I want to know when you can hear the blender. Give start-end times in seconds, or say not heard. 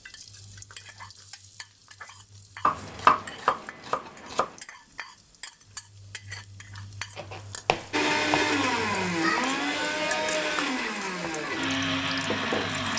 7.9-12.9.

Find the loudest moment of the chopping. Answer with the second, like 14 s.
3 s.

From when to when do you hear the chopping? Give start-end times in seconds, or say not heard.
2.6-4.5, 7.2-9.4.